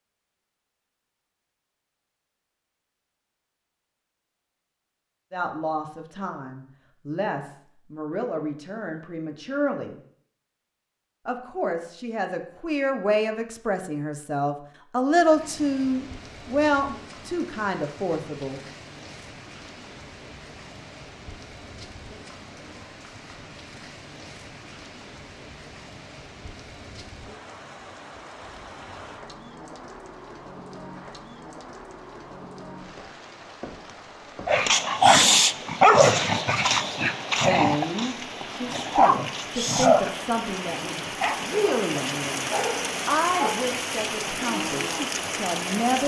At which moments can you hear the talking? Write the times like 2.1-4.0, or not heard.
5.3-9.9, 11.2-18.6, 37.4-46.0.